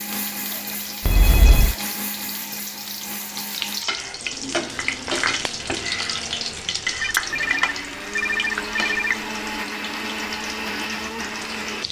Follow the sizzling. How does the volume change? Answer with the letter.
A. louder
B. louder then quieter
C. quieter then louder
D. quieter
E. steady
B.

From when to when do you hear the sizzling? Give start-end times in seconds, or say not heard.
0.0-11.8.